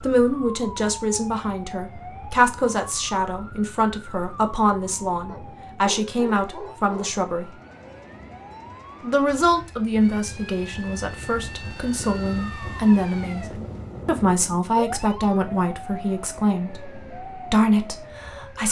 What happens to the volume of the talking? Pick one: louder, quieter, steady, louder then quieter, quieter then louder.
steady.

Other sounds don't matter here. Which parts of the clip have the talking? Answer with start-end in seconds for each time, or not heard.
0.0-7.5, 9.0-18.6.